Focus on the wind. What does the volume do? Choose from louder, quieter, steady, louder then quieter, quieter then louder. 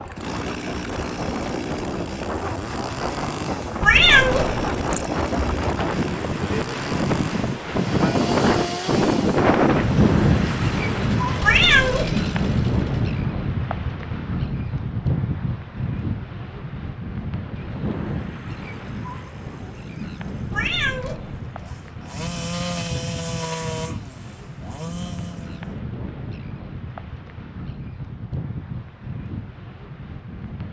louder then quieter.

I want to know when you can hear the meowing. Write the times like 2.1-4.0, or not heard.
3.8-5.0, 11.4-12.2, 20.5-21.5.